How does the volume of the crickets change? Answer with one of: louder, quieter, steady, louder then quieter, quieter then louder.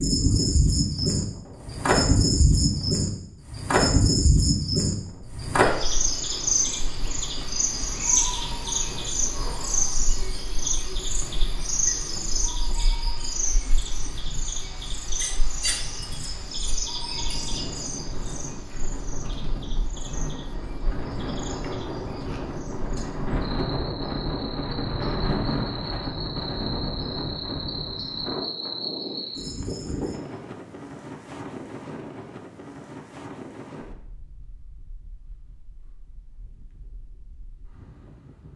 quieter then louder.